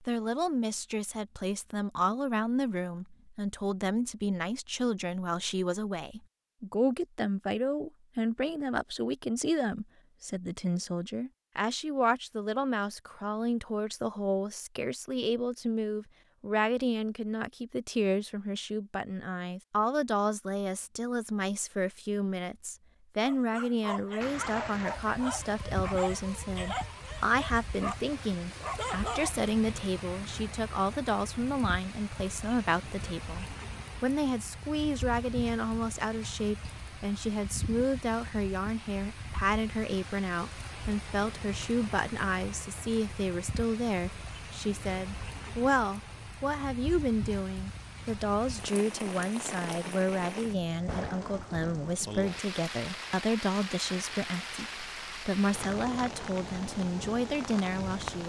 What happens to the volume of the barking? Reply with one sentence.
The loudness of the barking stays about the same.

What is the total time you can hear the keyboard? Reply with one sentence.
The keyboard can't be heard in this clip.